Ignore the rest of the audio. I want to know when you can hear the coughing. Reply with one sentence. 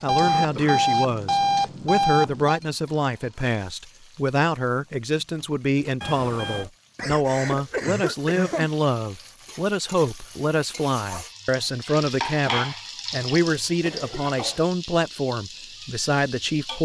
The coughing can be heard from 0.2 to 0.8 s, from 7.0 to 8.7 s and from 13.8 to 14.7 s.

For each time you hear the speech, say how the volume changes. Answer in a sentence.
The speech can be heard from 0.0 to 16.8 s, at a steady volume.